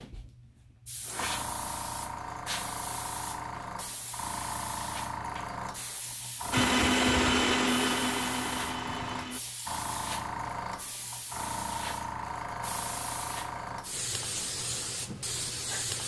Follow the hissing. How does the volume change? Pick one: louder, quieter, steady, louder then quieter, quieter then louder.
steady.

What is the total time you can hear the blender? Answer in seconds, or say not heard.
3 s.